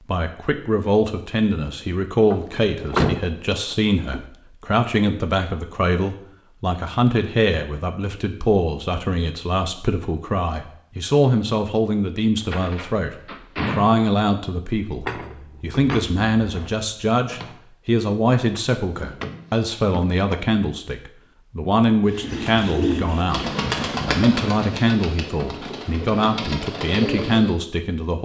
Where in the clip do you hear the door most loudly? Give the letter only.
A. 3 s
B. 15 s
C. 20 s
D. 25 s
A.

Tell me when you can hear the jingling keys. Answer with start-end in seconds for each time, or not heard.
15.0-17.6.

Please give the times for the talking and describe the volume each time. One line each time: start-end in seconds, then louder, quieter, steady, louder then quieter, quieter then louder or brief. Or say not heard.
0.1-28.1 steady.